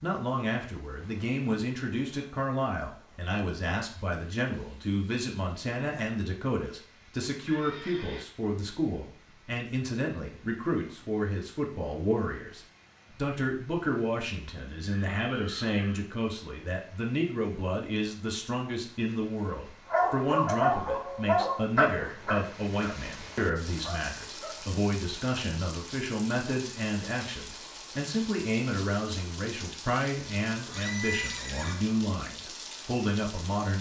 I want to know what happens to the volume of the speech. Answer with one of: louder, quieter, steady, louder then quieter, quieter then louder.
steady.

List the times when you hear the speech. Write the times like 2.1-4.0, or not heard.
0.0-33.7.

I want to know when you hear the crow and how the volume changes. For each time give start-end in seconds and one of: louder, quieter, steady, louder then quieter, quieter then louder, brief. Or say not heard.
not heard.